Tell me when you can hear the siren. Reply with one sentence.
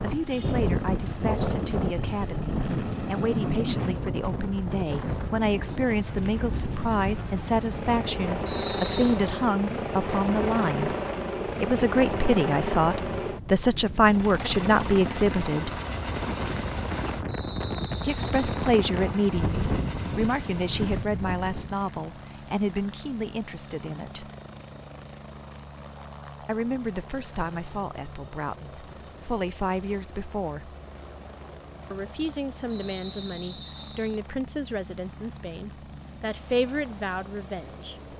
You can't hear the siren here.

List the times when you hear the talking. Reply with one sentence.
You can hear the talking from 0.0 to 10.9 s, from 11.6 to 15.8 s, from 18.0 to 24.3 s, from 26.4 to 30.8 s and from 31.9 to 38.1 s.